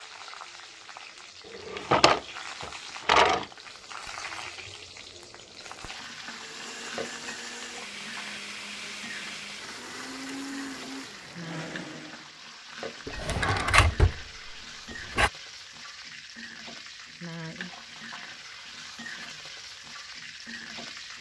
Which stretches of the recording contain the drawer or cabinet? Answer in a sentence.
You can hear the drawer or cabinet from 1.5 to 3.5 s and from 13.1 to 15.3 s.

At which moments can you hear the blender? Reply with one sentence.
You can hear the blender from 6.2 to 12.3 s.